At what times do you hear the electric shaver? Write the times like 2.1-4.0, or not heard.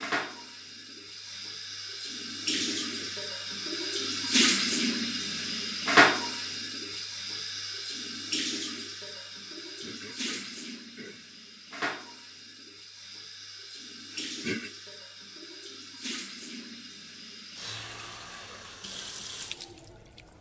not heard.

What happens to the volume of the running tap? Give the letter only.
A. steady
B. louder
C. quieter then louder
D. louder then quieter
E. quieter
D.